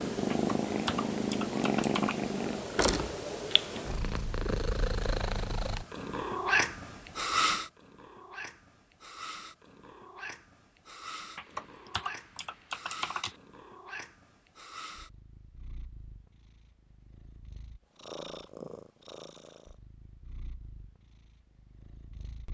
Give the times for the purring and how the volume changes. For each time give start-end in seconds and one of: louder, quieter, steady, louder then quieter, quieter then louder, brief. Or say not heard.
0.0-22.5 quieter.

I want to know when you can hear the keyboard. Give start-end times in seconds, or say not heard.
0.3-2.1, 11.3-13.3.